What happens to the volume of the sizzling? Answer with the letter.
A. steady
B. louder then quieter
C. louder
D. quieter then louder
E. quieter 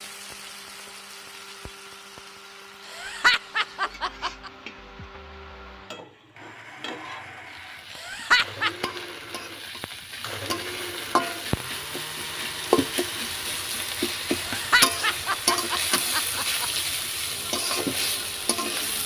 C.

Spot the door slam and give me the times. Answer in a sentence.
The door slam can't be heard in this clip.